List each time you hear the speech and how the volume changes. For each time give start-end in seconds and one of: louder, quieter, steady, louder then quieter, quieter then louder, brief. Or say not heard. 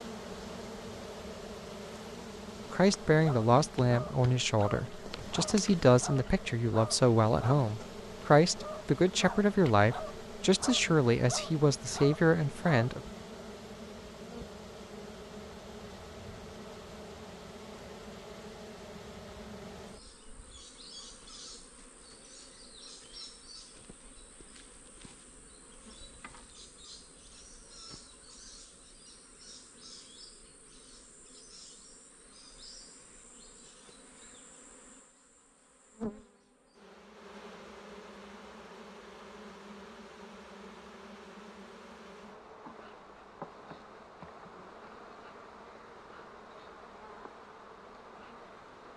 2.7-13.0 steady.